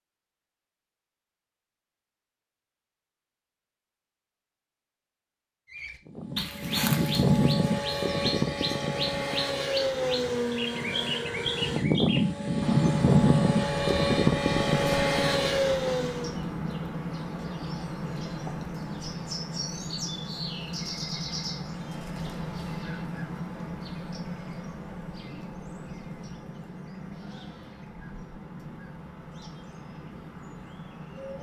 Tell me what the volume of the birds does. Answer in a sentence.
The volume of the birds goes down.